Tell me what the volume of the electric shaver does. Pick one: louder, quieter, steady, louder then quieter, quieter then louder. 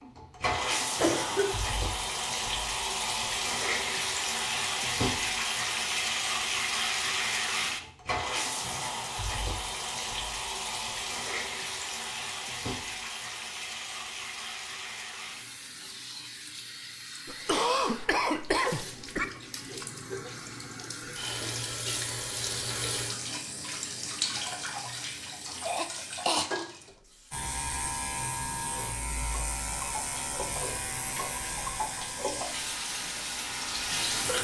quieter.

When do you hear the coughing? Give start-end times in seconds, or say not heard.
0.9-1.6, 17.2-19.2, 25.6-26.5.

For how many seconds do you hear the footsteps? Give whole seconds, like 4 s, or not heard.
not heard.